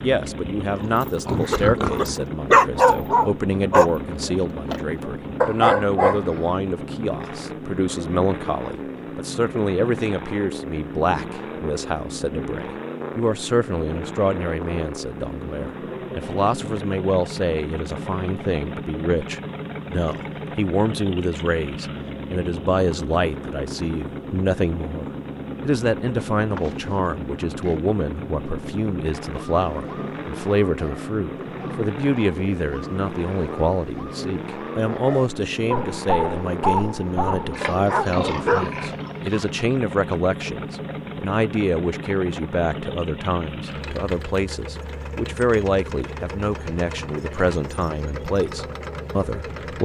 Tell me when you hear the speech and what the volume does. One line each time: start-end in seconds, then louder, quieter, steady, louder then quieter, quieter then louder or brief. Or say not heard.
0.0-49.7 steady.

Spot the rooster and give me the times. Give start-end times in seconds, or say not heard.
not heard.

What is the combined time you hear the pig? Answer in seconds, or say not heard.
5 s.